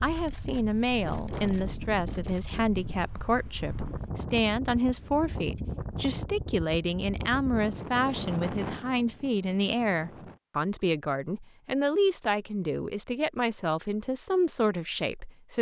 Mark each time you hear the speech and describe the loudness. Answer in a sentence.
You can hear the speech from 0.0 to 15.5 s, at a steady volume.